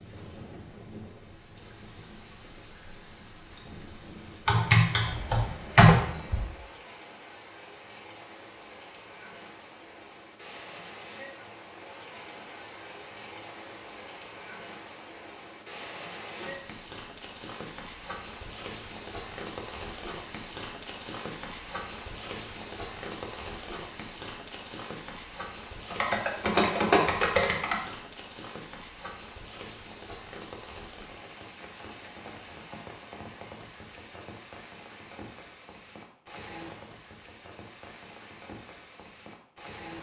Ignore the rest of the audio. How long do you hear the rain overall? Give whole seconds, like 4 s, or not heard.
40 s.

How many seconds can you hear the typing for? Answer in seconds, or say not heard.
4 s.